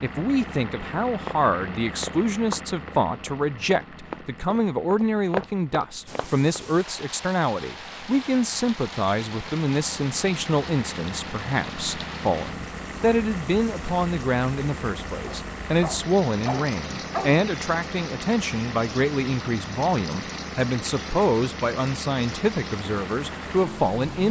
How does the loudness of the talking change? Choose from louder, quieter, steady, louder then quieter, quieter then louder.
steady.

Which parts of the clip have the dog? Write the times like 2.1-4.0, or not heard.
15.2-17.4.